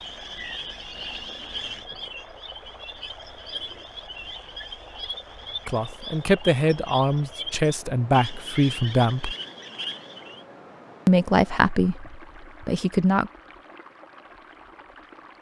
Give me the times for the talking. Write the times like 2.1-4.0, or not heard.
5.7-9.3, 11.1-13.3.